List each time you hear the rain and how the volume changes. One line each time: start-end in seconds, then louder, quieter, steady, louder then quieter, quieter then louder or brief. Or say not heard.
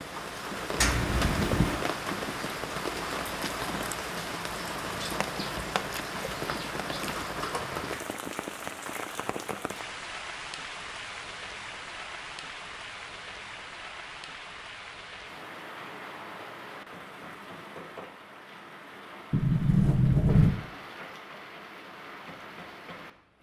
0.0-23.3 quieter.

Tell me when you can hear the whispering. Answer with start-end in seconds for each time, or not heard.
not heard.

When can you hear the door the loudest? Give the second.
20 s.